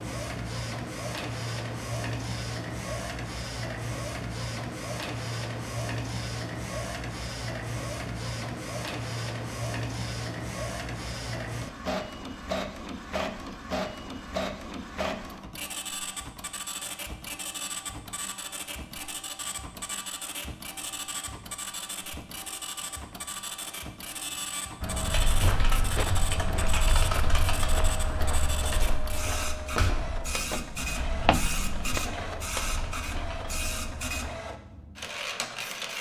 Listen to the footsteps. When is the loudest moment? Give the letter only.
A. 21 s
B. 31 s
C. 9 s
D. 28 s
B.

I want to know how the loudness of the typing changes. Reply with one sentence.
The volume of the typing goes down.